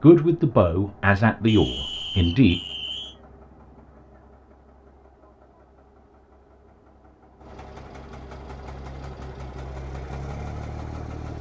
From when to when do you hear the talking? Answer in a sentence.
You can hear the talking from 0.0 to 2.5 s.